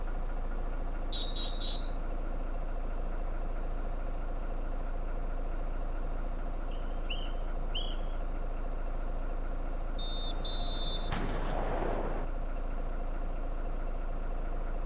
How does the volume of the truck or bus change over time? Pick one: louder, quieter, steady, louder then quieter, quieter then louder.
steady.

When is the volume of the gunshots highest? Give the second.
12 s.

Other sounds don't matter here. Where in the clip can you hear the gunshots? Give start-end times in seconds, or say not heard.
10.2-12.2.